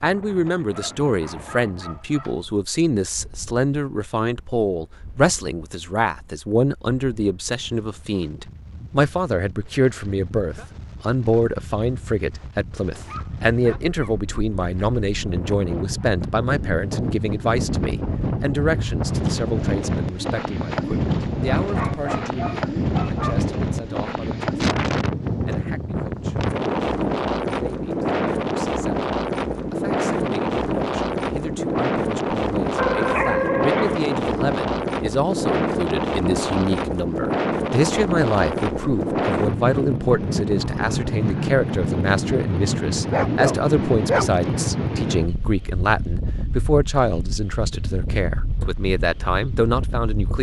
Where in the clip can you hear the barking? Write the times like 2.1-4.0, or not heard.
0.7-2.5, 13.1-14.2, 21.6-23.4, 32.8-34.0, 42.9-44.5.